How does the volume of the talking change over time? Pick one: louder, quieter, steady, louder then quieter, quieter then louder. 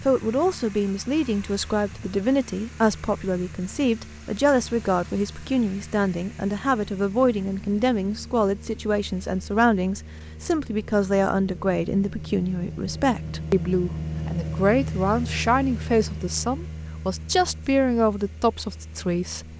steady.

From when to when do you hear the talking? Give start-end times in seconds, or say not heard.
0.0-19.4.